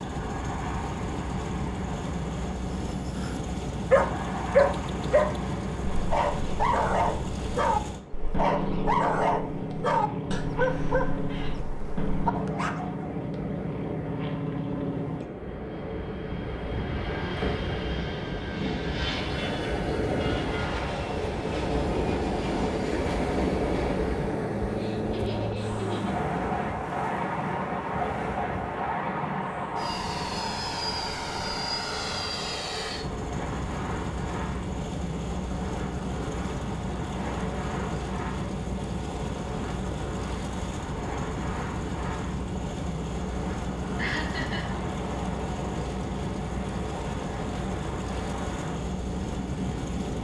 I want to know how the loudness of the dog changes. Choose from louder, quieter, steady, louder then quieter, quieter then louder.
quieter.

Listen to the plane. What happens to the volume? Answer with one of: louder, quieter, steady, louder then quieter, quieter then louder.
steady.